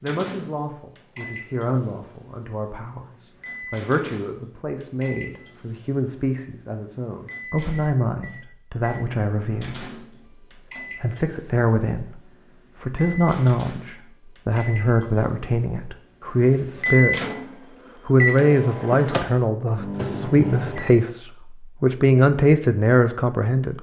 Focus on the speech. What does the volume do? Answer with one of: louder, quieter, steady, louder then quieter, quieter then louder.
louder.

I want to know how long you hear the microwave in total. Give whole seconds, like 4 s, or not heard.
21 s.